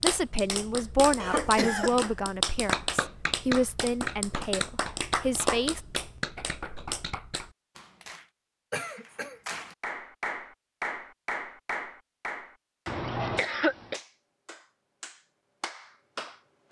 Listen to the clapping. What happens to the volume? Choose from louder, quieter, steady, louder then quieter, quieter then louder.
quieter.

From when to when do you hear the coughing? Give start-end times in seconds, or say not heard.
1.1-2.0, 8.7-9.4, 12.8-14.0.